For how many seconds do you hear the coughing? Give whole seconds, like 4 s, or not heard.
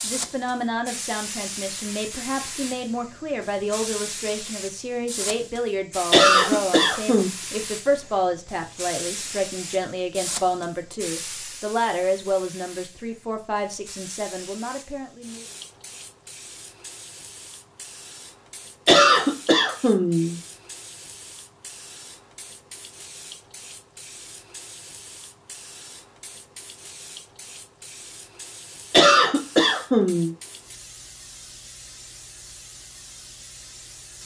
4 s.